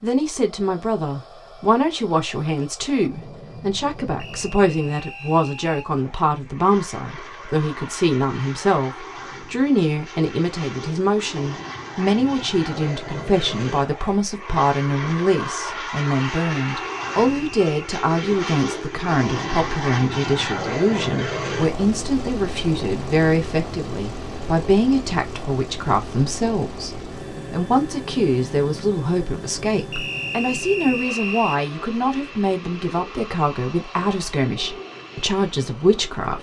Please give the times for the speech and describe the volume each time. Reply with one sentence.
You can hear the speech from 0.0 to 36.3 s, at a steady volume.